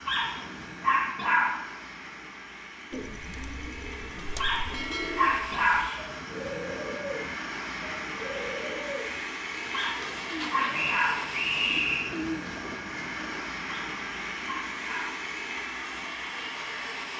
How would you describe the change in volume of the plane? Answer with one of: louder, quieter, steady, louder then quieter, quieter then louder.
louder.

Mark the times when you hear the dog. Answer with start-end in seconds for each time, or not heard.
0.1-1.6, 4.3-5.9, 9.7-11.2, 13.7-15.2.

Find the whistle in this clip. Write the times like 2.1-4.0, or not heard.
10.7-12.2.